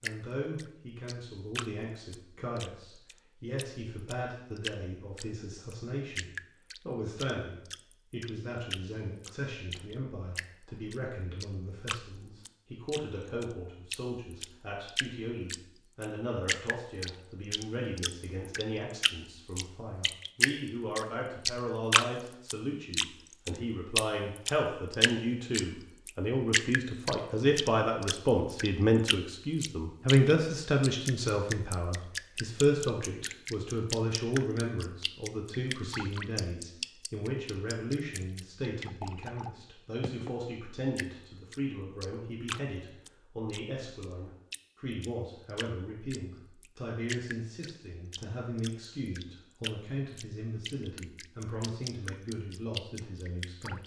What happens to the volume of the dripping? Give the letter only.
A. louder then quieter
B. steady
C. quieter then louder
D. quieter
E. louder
A.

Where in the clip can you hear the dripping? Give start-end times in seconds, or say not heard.
0.0-40.4, 41.0-53.8.